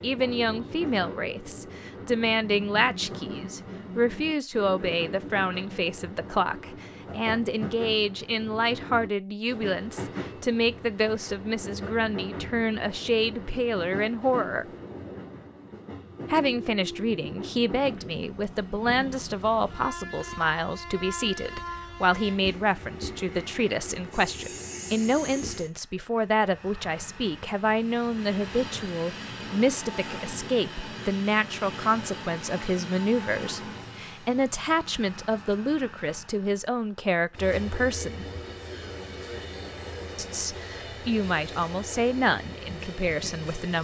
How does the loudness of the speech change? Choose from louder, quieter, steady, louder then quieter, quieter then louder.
steady.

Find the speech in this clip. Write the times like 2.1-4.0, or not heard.
0.0-14.7, 16.3-38.2, 40.1-43.7.